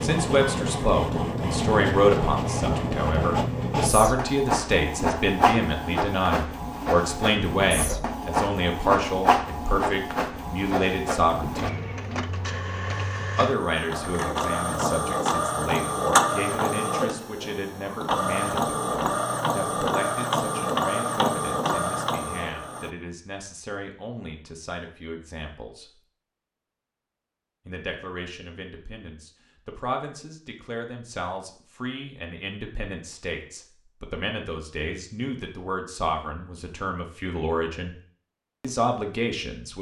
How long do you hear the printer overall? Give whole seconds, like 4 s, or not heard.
23 s.